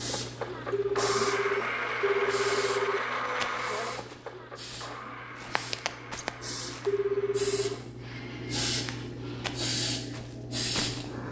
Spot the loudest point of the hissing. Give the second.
10 s.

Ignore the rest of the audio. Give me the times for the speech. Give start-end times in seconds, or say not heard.
not heard.